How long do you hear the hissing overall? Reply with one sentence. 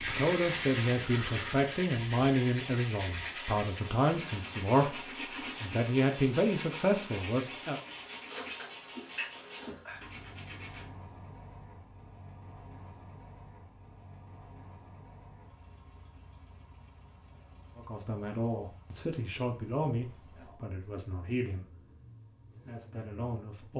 The hissing can be heard for 2 seconds in total.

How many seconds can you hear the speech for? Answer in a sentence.
The speech can be heard for 14 seconds in total.